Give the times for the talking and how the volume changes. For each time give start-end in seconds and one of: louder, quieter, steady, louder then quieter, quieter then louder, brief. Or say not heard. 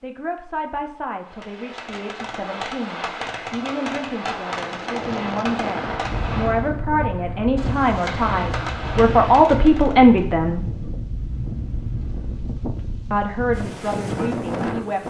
0.0-10.7 louder
13.1-15.0 brief.